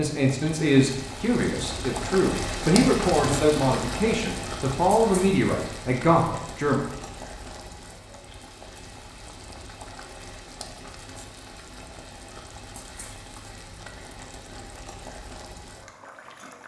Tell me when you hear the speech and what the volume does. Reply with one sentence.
The speech can be heard from 0.0 to 6.8 s, at a steady volume.